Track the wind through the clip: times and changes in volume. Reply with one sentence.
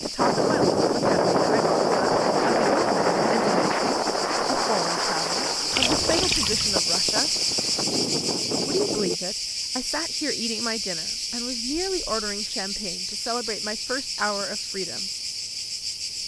You can hear the wind from 0.0 to 9.2 s, getting quieter.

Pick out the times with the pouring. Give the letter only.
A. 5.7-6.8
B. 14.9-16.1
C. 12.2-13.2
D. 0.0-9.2
A.